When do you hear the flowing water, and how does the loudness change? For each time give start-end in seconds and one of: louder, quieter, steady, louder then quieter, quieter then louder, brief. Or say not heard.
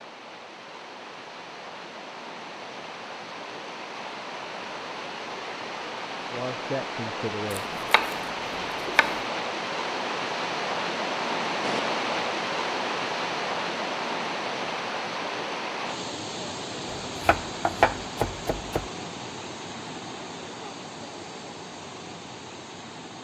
0.0-23.1 louder then quieter.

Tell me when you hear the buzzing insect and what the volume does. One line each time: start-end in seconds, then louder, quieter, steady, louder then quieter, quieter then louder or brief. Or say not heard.
not heard.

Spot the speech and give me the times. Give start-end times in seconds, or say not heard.
6.3-7.8.